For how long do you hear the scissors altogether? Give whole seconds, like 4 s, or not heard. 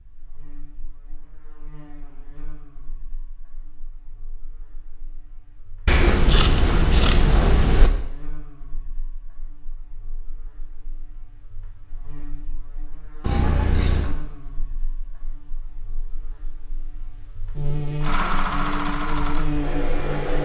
3 s.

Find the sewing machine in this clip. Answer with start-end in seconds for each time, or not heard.
18.0-20.4.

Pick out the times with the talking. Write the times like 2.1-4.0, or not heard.
not heard.